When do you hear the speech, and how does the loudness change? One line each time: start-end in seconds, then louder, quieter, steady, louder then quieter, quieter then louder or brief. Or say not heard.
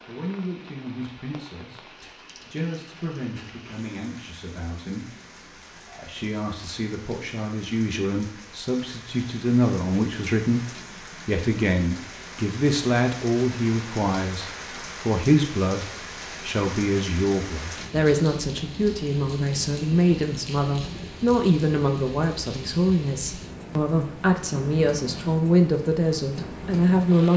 0.1-27.3 louder.